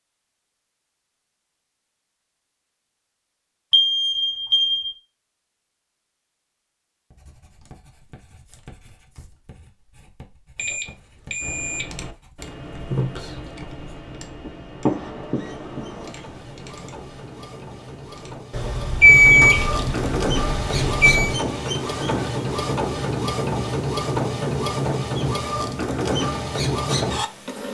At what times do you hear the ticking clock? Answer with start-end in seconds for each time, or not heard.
not heard.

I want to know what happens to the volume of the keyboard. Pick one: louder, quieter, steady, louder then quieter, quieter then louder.
quieter.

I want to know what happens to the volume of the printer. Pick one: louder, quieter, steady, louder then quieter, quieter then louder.
louder.